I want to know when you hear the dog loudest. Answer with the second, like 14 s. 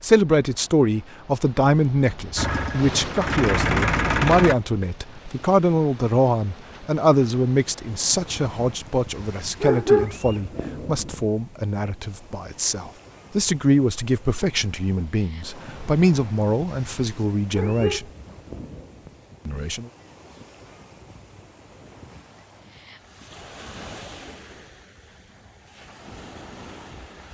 10 s.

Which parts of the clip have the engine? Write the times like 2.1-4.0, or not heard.
2.4-4.5.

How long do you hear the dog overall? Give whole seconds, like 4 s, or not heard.
3 s.